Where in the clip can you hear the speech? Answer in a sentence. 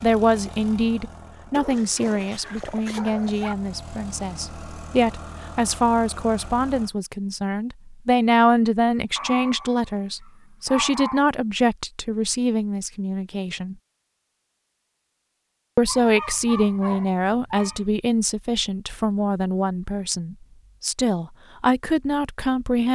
The speech can be heard from 0.0 to 13.8 s and from 15.8 to 22.8 s.